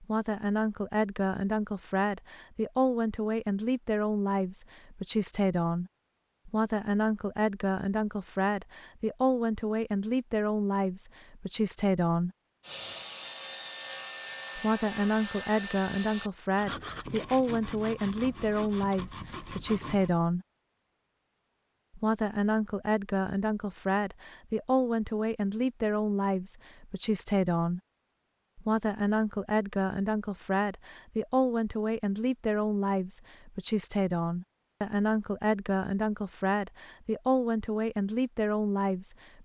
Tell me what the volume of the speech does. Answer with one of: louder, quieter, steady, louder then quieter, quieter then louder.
steady.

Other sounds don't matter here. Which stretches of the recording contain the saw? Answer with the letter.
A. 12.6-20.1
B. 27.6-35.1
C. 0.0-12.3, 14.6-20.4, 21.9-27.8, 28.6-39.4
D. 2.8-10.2
A.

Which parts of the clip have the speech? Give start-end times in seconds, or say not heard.
0.0-12.3, 14.6-20.4, 21.9-27.8, 28.6-39.4.